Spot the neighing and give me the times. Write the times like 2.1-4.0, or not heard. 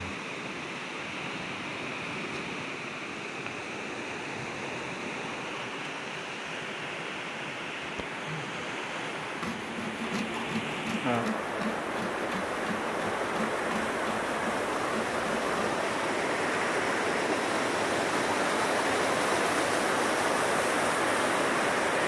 not heard.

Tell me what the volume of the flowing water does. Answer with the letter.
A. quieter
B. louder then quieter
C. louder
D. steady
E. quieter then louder
C.